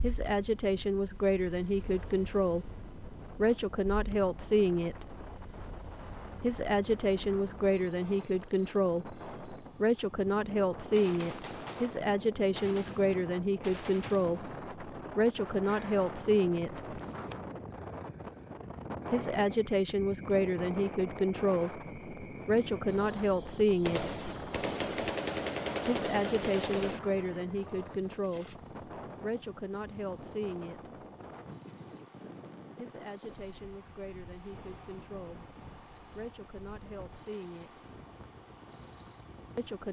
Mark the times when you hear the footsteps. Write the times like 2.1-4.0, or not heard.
not heard.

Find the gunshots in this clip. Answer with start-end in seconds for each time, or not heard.
10.8-14.4, 23.8-27.0.